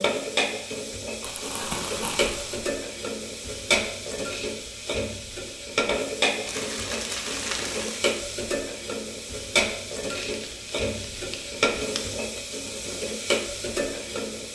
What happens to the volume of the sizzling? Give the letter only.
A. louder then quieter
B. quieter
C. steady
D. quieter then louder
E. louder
C.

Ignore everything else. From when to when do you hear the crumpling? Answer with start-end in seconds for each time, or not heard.
1.2-2.6, 6.5-8.1, 10.2-12.1.